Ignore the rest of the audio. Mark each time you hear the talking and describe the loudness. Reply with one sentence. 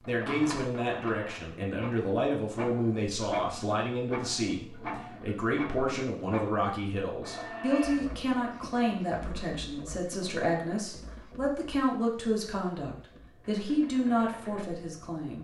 You can hear the talking from 0.1 to 15.3 s, at a steady volume.